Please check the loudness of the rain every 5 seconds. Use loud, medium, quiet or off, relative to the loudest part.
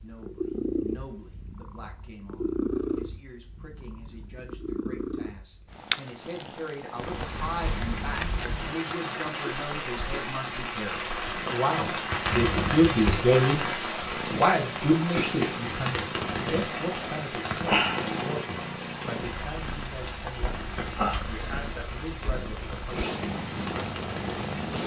off, medium, loud, loud, medium.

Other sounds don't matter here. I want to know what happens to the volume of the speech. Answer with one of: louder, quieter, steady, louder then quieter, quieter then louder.
louder then quieter.